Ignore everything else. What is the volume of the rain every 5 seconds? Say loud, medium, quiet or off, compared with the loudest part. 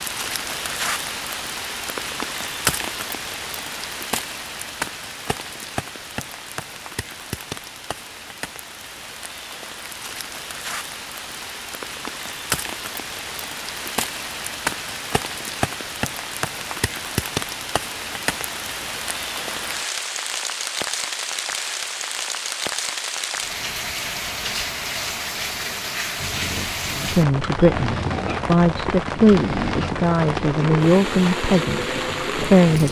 loud, medium, loud, loud, loud, loud, loud.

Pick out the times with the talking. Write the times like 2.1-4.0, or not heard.
27.1-32.8.